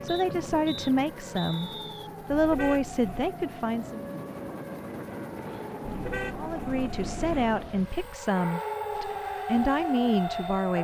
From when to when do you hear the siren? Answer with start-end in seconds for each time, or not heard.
0.0-10.7.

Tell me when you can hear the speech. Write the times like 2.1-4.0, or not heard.
0.0-4.0, 6.3-10.7.